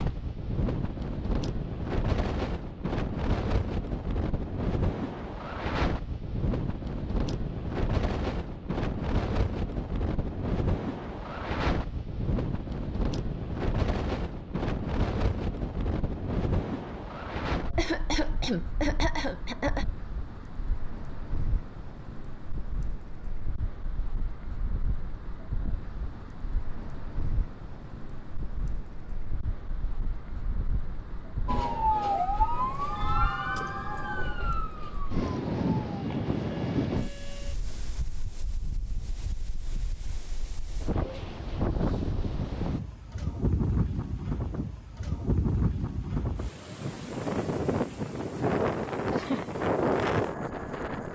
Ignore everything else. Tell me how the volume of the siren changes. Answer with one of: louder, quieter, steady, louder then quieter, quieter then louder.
quieter.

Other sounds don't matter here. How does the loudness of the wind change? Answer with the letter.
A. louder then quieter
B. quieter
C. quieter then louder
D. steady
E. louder
C.